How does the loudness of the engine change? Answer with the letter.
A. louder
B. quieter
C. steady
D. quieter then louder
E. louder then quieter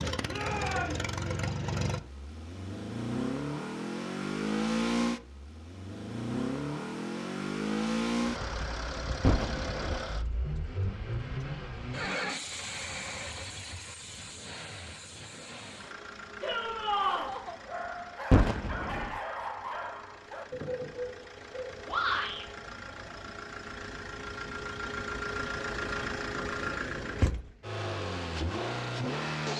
D.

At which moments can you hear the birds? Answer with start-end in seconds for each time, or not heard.
not heard.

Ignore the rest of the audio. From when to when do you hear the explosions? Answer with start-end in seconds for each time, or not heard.
9.2-10.1, 18.3-19.1.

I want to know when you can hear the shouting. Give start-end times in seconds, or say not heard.
0.2-1.0, 16.4-17.3, 21.9-22.4.